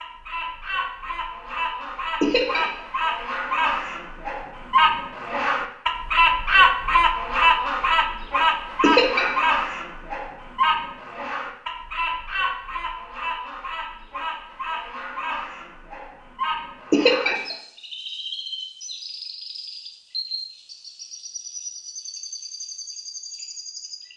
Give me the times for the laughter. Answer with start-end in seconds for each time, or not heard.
2.2-2.7, 8.8-9.3, 16.9-17.4.